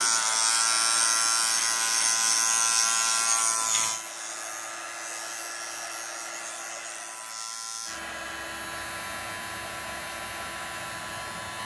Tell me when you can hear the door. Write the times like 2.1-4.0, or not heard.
not heard.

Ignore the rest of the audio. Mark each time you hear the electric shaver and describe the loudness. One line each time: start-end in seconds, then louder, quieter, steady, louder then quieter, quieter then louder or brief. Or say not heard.
0.0-11.6 quieter.